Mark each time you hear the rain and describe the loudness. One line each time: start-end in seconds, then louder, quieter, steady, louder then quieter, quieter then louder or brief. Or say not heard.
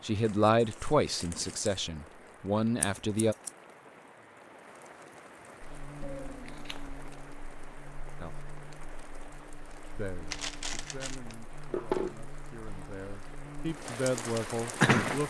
0.0-15.2 louder.